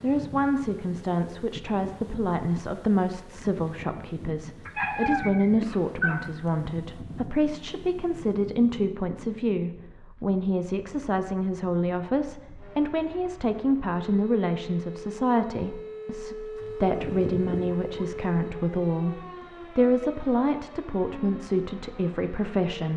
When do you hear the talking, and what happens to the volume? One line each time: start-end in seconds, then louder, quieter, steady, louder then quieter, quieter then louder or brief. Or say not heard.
0.0-22.9 steady.